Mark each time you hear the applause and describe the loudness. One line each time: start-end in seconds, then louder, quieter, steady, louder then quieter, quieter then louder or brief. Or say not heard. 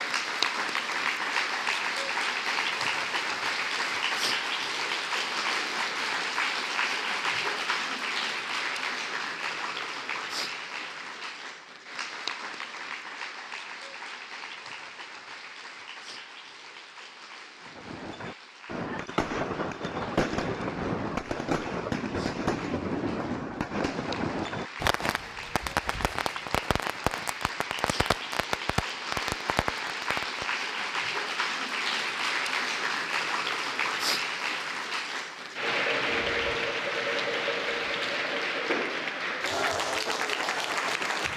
0.0-41.3 quieter then louder.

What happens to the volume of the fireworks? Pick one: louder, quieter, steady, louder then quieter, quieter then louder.
steady.